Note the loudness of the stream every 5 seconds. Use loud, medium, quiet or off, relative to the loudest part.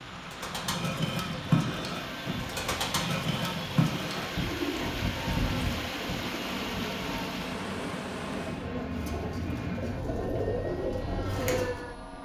loud, loud, off.